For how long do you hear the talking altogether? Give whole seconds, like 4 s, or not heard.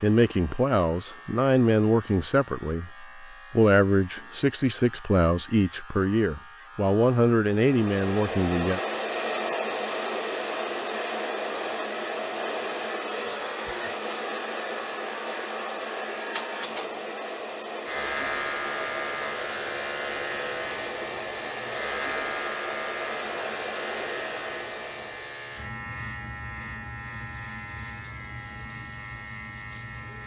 9 s.